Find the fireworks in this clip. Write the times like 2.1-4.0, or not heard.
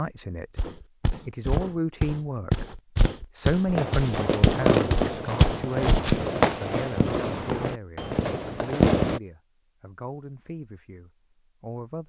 3.6-9.2.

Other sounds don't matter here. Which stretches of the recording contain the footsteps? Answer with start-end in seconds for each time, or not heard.
0.6-6.2.